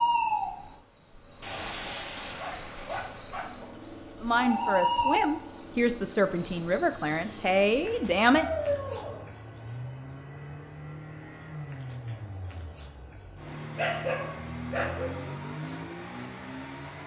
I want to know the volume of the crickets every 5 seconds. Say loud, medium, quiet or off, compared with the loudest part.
loud, loud, medium, medium.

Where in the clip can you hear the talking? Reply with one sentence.
You can hear the talking from 4.2 to 8.4 s.